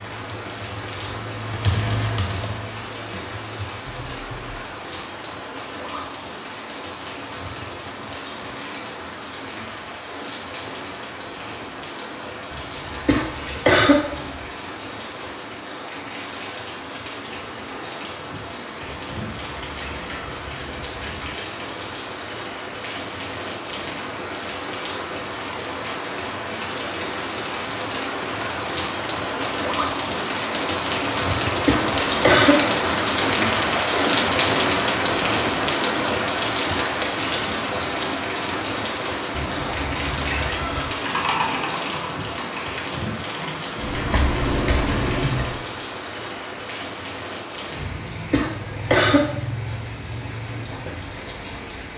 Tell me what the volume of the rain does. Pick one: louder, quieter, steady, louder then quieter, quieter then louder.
louder then quieter.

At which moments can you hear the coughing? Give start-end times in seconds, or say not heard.
13.1-13.9, 31.6-32.5, 48.3-49.2.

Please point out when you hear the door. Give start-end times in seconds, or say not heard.
not heard.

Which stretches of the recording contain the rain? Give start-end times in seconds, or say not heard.
0.0-51.9.